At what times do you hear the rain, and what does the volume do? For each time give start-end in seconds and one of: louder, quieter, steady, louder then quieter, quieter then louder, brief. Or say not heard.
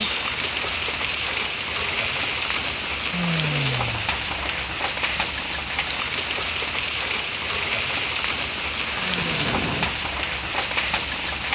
0.0-11.4 steady.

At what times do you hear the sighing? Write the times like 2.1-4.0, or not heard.
3.1-4.1, 8.8-9.9.